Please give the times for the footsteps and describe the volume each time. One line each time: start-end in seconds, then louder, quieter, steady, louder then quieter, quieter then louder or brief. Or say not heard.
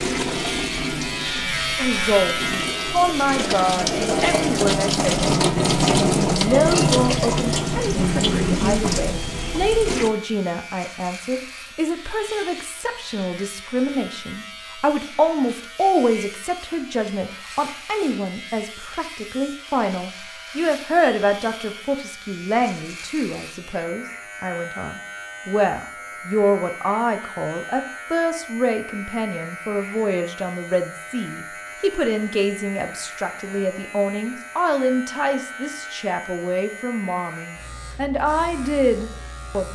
not heard.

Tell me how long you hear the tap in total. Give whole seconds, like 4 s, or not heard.
10 s.